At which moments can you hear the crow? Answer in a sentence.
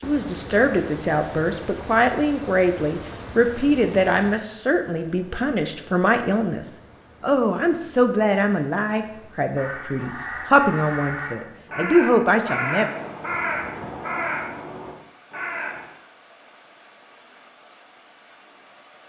You can hear the crow from 9.6 to 15.8 s.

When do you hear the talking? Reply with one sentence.
The talking can be heard from 0.0 to 12.9 s.